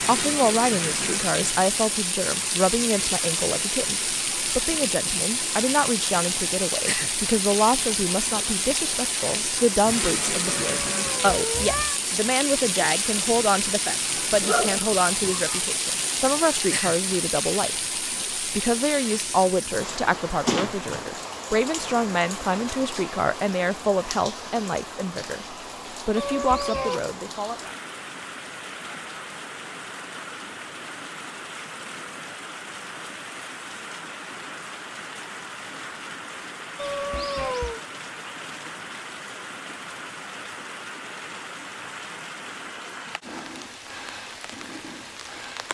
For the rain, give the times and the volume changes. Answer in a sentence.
You can hear the rain from 0.0 to 45.7 s, getting quieter.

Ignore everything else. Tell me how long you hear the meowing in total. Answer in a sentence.
The meowing can be heard for 3 seconds in total.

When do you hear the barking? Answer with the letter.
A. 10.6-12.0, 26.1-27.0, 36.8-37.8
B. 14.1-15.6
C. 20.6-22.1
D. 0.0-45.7
B.